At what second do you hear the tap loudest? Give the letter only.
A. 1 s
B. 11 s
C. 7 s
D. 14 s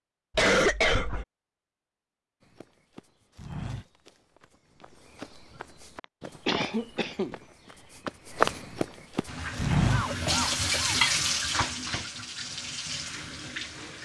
B.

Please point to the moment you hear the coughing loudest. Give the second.
1 s.